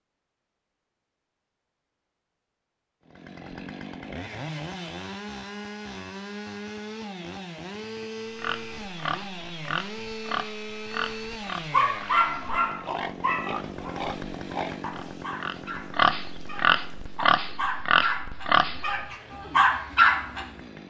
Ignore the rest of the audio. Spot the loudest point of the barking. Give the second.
20 s.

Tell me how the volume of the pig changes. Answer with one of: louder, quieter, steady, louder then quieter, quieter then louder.
louder.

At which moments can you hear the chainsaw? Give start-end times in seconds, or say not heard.
3.0-20.8.